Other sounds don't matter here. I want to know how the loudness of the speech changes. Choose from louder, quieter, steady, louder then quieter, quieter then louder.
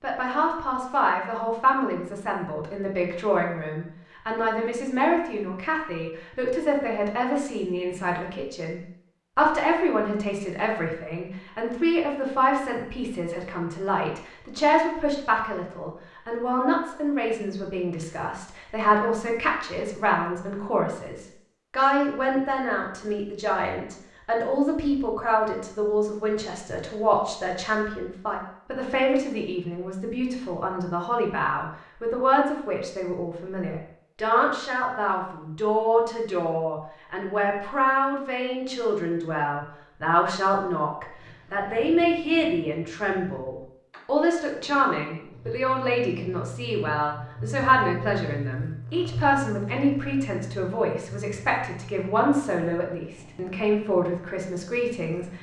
steady.